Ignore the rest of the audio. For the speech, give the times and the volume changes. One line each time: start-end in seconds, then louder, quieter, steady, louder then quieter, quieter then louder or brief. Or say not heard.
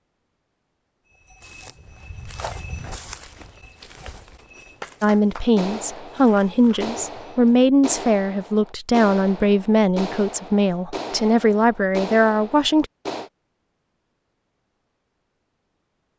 5.0-12.8 steady.